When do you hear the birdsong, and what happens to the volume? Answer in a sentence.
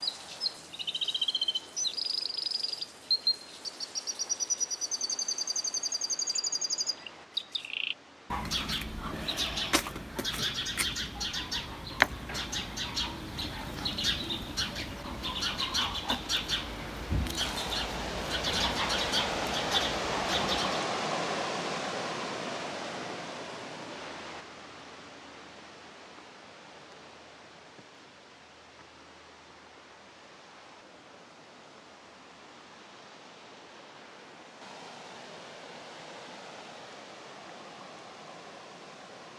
The birdsong can be heard from 0.0 to 20.8 s, at a steady volume.